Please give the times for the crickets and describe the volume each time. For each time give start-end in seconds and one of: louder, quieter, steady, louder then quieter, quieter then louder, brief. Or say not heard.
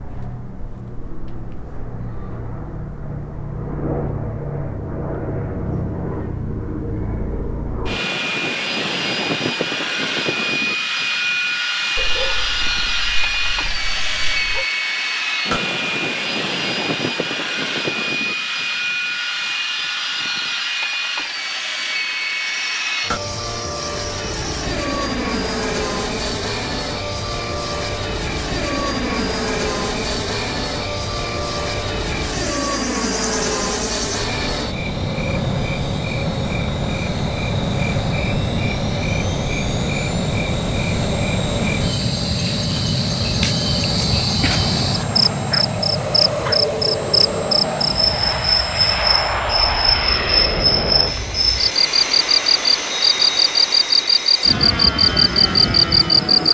22.5-56.4 louder.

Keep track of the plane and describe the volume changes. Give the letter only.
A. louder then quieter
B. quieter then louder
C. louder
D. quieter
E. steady
E.